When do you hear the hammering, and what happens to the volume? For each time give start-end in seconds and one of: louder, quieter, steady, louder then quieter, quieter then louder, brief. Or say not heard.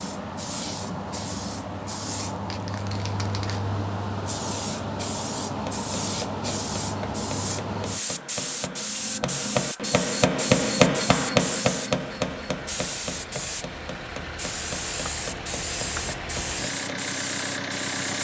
5.5-17.1 louder then quieter.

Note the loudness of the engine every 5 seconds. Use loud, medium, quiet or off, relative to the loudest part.
off, off, medium, loud.